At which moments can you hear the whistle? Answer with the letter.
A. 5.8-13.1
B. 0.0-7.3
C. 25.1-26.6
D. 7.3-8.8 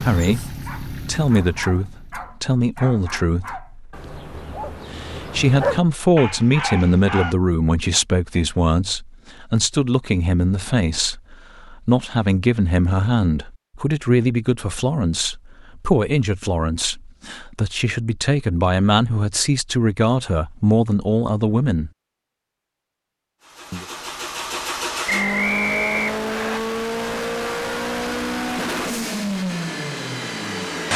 C.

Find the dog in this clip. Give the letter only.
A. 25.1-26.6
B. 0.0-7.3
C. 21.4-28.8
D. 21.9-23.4
B.